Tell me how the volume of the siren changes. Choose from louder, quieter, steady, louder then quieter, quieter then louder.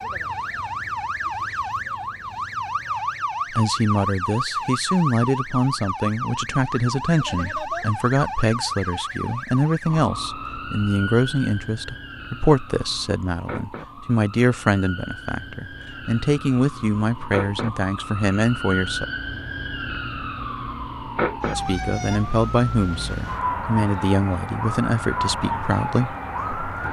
quieter then louder.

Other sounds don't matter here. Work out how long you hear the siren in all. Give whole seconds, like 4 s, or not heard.
27 s.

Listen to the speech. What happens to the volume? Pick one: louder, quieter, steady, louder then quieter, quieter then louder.
steady.